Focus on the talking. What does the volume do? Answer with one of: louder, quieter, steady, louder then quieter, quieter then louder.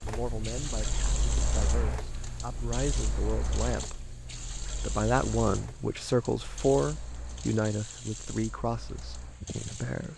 louder then quieter.